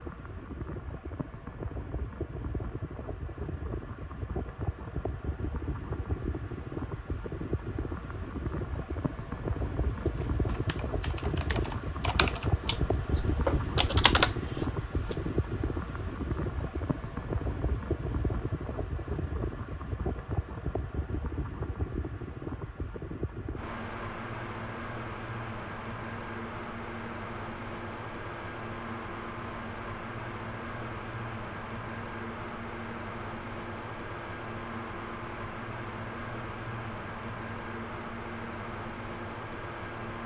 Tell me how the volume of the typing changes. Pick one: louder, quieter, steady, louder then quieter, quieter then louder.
louder.